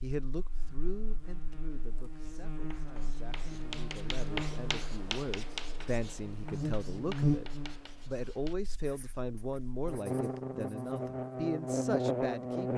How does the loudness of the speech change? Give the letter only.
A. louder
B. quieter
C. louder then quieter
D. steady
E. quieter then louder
A.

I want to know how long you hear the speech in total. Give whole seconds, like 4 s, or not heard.
13 s.